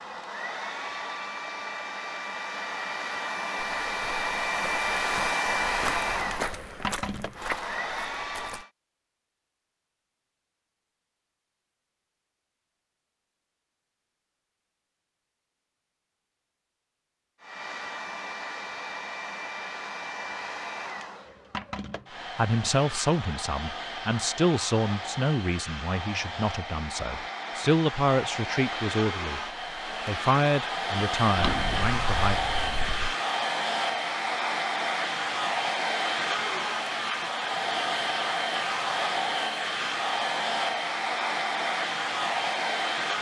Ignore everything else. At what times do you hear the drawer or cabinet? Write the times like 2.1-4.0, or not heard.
31.4-33.1.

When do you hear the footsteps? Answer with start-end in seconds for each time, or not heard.
3.8-8.7.